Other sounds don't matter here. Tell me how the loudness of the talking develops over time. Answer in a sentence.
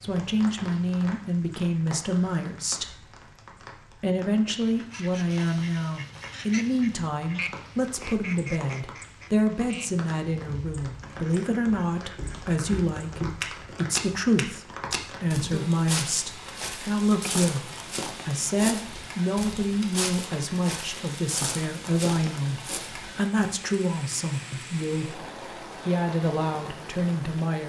The loudness of the talking stays about the same.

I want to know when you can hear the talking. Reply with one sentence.
The talking can be heard from 0.0 to 3.0 s and from 4.0 to 27.6 s.